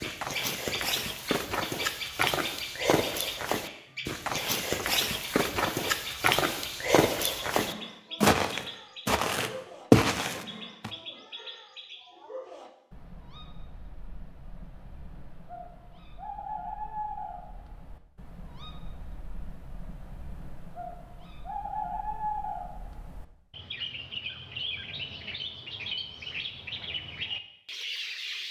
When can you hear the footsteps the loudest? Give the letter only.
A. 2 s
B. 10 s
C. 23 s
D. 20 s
B.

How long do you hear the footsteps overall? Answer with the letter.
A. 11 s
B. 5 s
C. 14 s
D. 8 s
A.